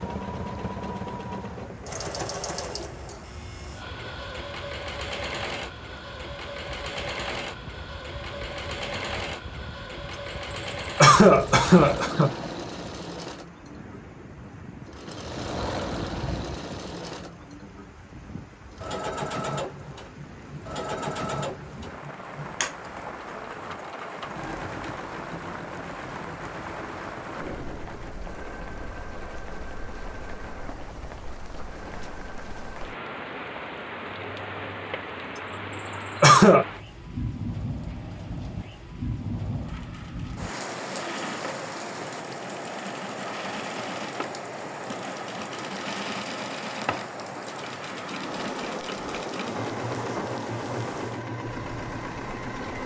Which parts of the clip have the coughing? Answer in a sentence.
You can hear the coughing from 10.9 to 12.3 s and from 36.2 to 36.6 s.